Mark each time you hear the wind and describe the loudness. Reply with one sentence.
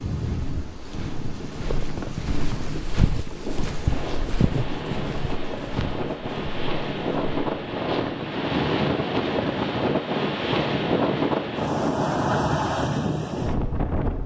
You can hear the wind from 0.0 to 14.2 s, getting louder.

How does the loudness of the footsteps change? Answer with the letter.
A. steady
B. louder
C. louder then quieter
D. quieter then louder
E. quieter
C.